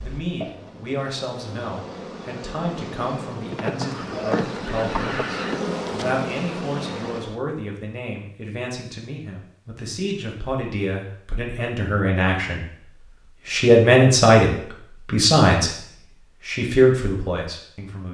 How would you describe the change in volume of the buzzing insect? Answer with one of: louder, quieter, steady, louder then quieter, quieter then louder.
louder.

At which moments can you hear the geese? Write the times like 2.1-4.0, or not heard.
3.8-5.7.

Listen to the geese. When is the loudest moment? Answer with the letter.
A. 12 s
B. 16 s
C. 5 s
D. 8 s
C.